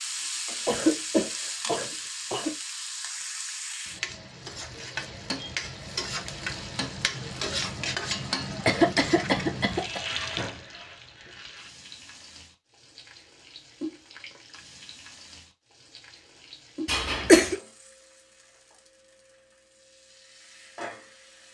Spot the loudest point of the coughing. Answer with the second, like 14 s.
17 s.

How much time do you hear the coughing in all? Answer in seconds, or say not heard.
4 s.